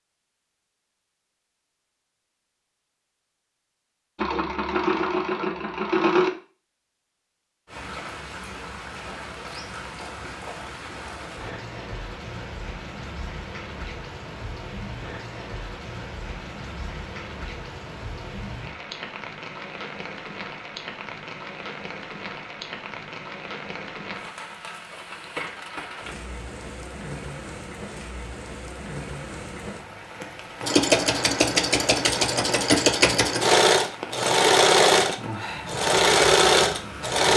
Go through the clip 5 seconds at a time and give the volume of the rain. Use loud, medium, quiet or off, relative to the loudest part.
off, loud, loud, loud, loud, loud, loud, loud.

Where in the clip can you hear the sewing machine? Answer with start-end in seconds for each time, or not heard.
4.2-6.3, 30.6-37.3.